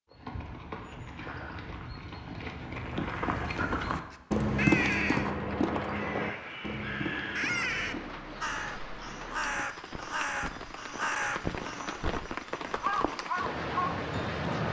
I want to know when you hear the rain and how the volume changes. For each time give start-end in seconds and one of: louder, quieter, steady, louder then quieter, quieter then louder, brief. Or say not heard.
6.2-14.6 louder.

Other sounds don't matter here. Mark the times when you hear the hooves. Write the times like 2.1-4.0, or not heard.
0.1-8.2.